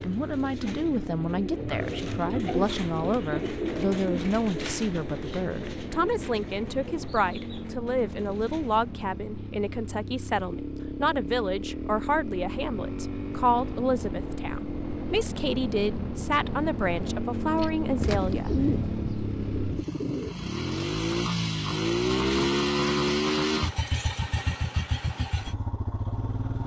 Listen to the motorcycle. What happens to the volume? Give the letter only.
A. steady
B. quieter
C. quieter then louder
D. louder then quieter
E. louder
E.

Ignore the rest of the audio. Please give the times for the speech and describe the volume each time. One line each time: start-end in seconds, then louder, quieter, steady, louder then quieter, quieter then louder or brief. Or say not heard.
0.0-18.6 steady.